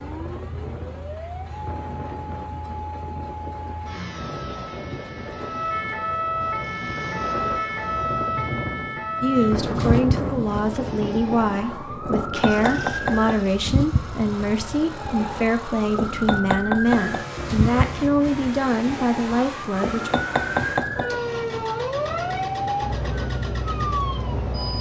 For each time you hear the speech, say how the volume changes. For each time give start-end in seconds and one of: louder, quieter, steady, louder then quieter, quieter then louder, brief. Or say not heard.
9.2-20.1 steady.